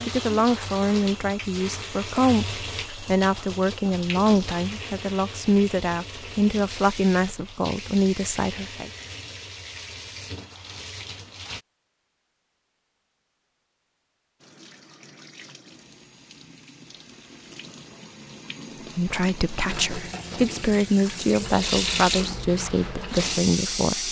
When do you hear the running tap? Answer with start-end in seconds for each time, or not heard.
0.0-11.7, 14.4-24.0.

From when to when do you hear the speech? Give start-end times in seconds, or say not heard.
0.1-8.9, 18.9-24.0.